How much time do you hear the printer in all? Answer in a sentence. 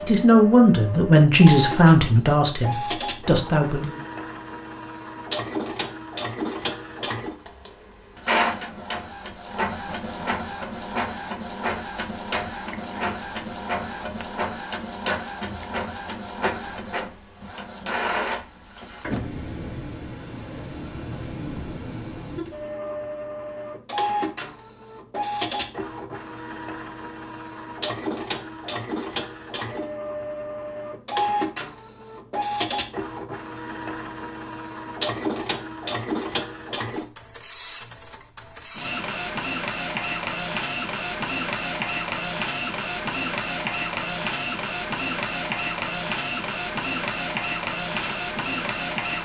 The printer can be heard for 49 seconds in total.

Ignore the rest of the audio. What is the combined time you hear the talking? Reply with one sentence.
The talking can be heard for 4 seconds in total.